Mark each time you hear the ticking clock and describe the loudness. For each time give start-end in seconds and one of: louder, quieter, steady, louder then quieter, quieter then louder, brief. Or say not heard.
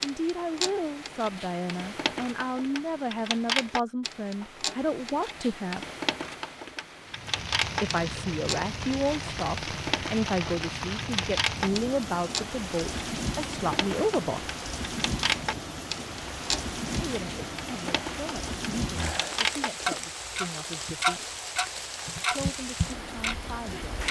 0.0-24.0 louder.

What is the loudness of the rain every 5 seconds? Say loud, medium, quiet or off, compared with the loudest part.
off, loud, loud, loud, loud.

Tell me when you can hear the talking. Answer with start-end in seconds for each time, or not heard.
0.0-5.8, 7.8-14.5, 16.9-21.4, 22.3-24.0.